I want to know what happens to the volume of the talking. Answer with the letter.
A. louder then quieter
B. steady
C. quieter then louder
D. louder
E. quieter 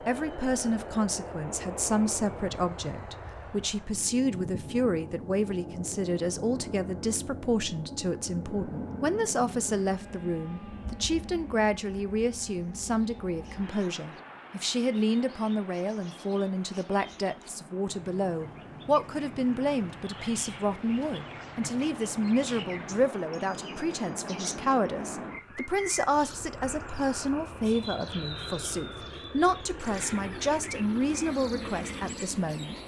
B.